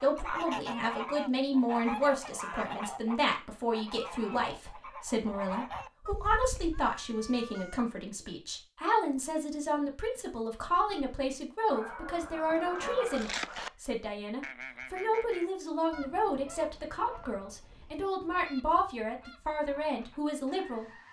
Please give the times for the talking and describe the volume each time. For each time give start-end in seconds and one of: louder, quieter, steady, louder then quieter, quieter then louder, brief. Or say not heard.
0.0-20.9 steady.